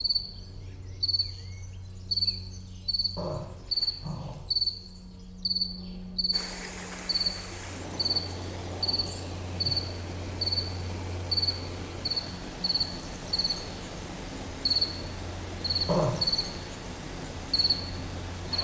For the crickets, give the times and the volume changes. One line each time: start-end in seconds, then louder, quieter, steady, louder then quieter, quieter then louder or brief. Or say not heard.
0.0-18.5 steady.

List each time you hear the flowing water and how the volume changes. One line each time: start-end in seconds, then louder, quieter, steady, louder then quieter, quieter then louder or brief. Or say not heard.
6.3-18.5 steady.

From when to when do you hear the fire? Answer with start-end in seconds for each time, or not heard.
not heard.